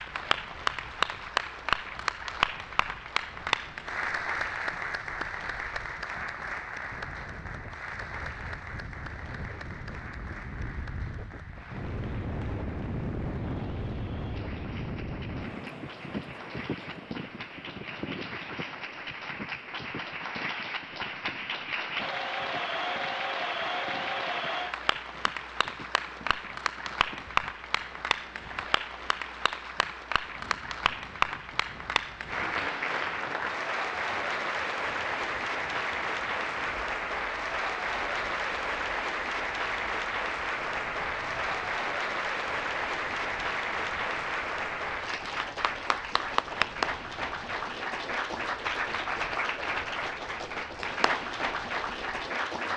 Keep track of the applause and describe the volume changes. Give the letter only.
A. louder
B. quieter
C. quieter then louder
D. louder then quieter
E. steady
C.